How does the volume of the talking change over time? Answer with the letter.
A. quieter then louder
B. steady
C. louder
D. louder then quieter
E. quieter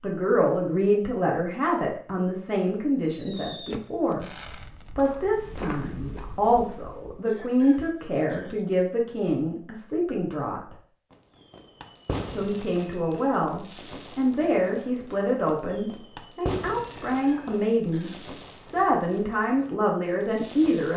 B.